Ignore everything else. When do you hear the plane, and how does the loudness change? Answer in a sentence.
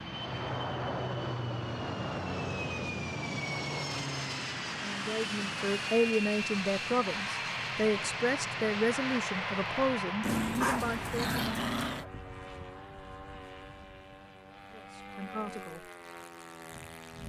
You can hear the plane from 0.0 to 17.2 s, getting quieter.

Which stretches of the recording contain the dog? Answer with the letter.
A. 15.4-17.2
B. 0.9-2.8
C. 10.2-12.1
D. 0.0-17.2
C.